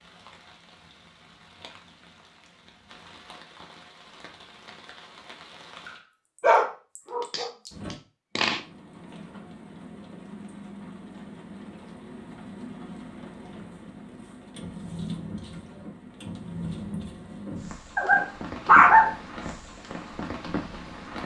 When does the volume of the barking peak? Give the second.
19 s.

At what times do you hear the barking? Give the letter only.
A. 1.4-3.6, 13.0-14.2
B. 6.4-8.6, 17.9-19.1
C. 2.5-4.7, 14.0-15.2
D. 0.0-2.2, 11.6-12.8
B.